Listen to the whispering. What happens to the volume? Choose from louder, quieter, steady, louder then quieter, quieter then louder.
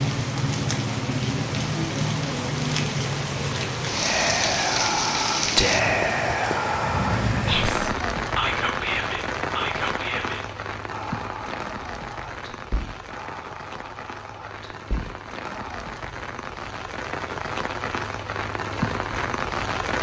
quieter.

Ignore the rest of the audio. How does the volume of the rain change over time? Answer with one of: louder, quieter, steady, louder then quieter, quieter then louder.
quieter then louder.